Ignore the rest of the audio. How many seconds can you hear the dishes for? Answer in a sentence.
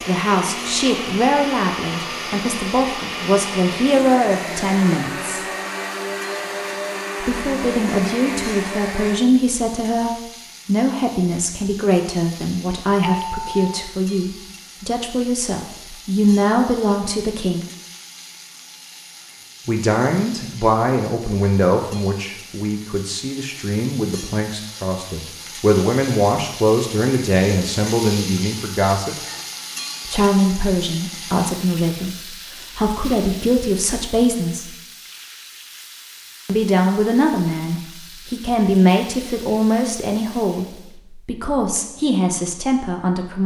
The dishes can't be heard in this clip.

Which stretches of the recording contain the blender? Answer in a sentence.
The blender can be heard from 0.0 to 9.2 s.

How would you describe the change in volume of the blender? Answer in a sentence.
The volume of the blender stays about the same.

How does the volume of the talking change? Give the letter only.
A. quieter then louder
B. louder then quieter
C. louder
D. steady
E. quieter
D.